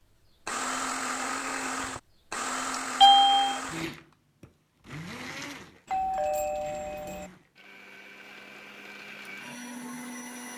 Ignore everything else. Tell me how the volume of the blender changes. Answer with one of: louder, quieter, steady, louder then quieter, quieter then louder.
quieter then louder.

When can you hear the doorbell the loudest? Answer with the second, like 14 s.
3 s.